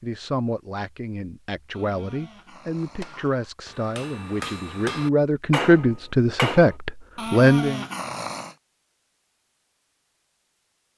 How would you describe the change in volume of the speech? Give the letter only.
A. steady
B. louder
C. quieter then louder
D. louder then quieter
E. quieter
B.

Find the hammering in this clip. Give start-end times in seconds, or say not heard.
2.8-6.8.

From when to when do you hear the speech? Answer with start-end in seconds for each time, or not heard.
0.0-7.8.